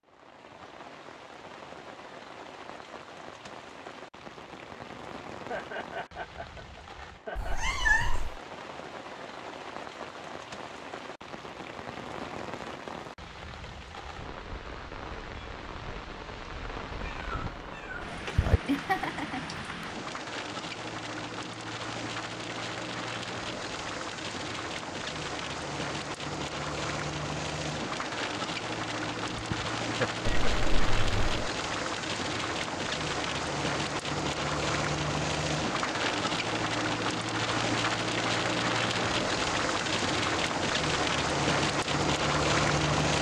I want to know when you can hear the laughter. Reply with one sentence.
You can hear the laughter from 5.3 to 7.6 s, from 18.6 to 19.9 s and from 29.3 to 30.7 s.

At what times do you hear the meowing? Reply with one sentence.
The meowing can be heard from 7.3 to 8.4 s, from 16.9 to 18.6 s and from 30.2 to 31.2 s.